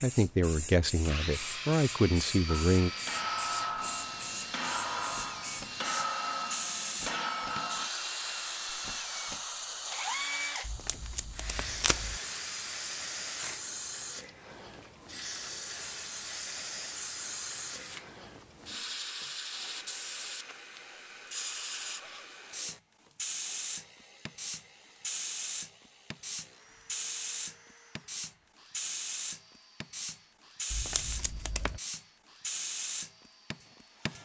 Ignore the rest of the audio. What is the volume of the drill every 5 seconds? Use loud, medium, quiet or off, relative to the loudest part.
loud, loud, loud, medium, quiet, quiet, quiet.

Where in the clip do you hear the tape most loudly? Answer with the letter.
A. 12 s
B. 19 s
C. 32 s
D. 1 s
A.